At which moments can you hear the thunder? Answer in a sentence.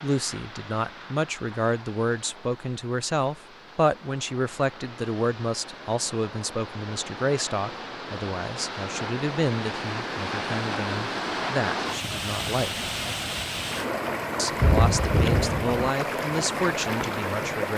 You can hear the thunder from 14.6 to 15.8 s.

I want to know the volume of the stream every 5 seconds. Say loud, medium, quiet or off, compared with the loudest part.
quiet, medium, loud, loud.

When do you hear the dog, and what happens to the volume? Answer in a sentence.
The dog can't be heard in this clip.